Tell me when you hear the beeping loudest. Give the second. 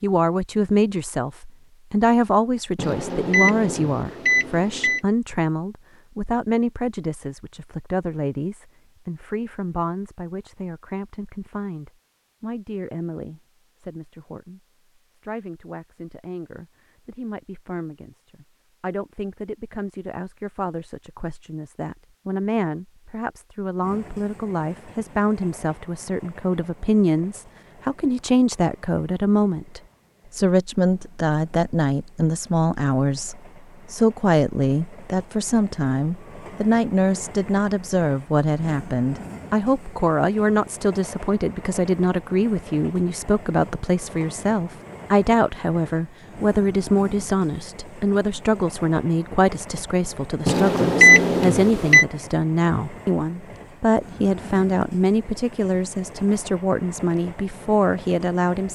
51 s.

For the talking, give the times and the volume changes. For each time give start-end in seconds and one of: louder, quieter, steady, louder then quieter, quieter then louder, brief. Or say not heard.
0.0-58.7 quieter then louder.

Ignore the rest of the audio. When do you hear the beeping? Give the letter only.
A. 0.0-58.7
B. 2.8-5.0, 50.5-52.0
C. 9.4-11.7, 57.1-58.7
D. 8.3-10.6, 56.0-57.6
B.